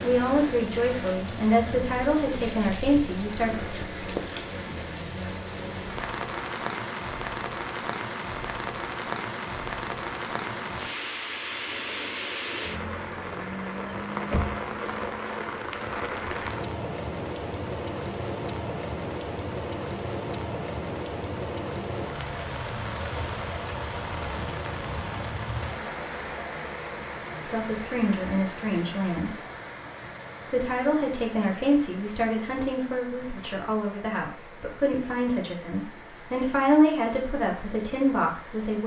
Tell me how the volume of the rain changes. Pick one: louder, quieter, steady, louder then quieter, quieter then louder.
quieter.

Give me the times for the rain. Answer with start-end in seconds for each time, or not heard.
0.0-38.8.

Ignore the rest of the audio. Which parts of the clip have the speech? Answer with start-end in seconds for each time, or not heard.
0.0-3.5, 27.4-29.3, 30.5-38.8.